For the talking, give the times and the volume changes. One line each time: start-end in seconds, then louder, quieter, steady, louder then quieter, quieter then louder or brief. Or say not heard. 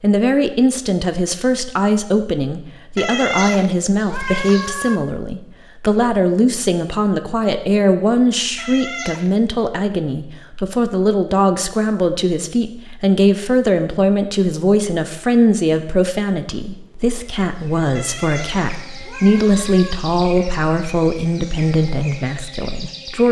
0.0-23.2 steady.